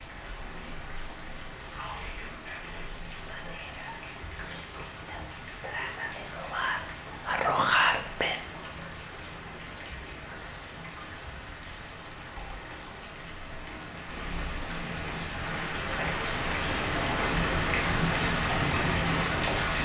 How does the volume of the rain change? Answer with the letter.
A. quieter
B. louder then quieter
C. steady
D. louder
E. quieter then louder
D.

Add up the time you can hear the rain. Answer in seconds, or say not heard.
20 s.